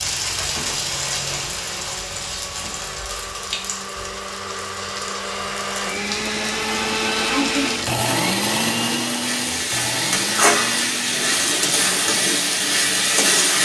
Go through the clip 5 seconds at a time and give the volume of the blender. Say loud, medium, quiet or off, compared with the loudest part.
medium, loud, medium.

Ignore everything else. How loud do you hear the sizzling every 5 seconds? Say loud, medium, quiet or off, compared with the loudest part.
medium, medium, loud.